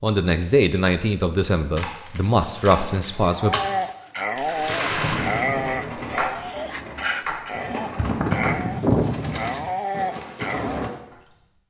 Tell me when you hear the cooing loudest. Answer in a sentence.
The volume of the cooing peaks at 9 seconds.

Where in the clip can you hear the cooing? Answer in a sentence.
The cooing can be heard from 2.9 to 10.9 s.